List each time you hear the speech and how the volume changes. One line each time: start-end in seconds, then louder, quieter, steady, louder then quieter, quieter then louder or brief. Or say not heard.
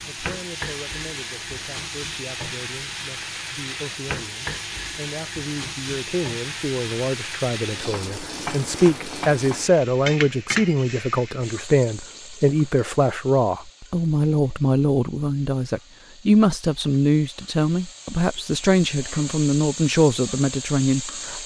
0.0-21.4 louder.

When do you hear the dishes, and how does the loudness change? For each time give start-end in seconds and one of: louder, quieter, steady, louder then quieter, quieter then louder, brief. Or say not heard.
not heard.